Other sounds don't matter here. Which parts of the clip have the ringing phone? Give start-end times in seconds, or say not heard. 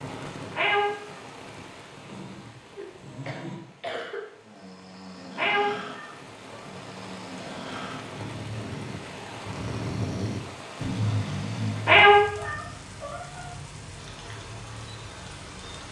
not heard.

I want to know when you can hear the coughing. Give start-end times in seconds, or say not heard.
2.7-4.2.